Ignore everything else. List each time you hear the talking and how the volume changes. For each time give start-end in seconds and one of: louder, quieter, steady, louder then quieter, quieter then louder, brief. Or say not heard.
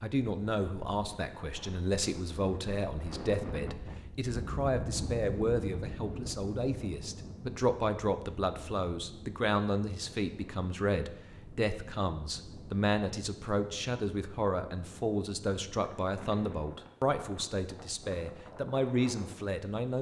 0.0-19.9 steady.